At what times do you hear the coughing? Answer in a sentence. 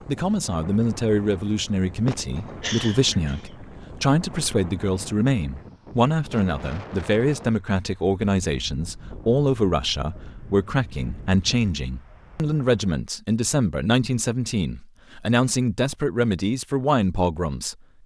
You can hear the coughing from 2.0 to 3.5 s.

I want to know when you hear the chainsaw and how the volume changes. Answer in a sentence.
The chainsaw can't be heard in this clip.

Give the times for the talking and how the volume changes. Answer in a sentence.
You can hear the talking from 0.1 to 17.8 s, at a steady volume.